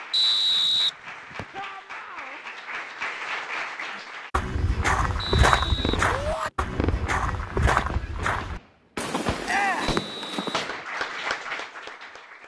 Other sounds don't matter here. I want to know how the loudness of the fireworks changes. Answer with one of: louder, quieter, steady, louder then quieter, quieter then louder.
quieter then louder.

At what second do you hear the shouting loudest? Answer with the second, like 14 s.
10 s.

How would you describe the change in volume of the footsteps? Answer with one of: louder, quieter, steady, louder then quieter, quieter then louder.
quieter.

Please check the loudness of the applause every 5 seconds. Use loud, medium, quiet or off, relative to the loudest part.
loud, off, loud.